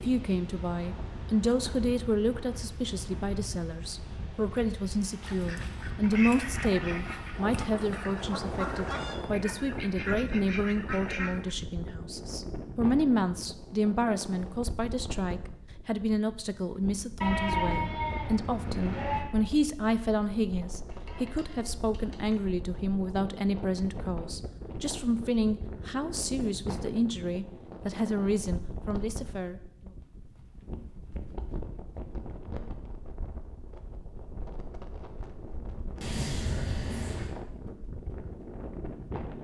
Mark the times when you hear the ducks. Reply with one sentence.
The ducks can be heard from 5.2 to 11.6 s.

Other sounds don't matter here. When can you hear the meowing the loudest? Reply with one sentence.
The loudest moment of the meowing is at 36 seconds.